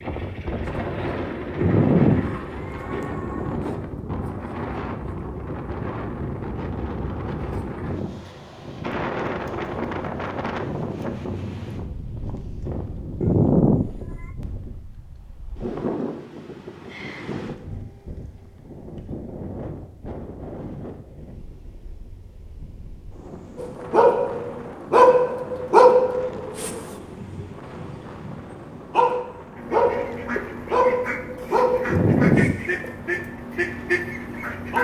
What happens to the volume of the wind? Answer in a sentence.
The loudness of the wind goes down.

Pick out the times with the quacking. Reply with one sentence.
The quacking can be heard from 0.0 to 3.1 s and from 29.6 to 34.8 s.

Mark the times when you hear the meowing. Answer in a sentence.
The meowing can be heard from 1.6 to 3.5 s, from 13.2 to 13.9 s and from 31.9 to 32.6 s.